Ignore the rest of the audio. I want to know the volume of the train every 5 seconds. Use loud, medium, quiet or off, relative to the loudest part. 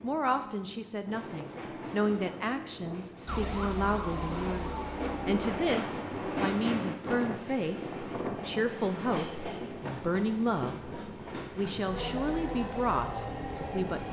medium, loud, loud.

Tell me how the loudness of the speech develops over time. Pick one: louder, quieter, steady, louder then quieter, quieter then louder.
steady.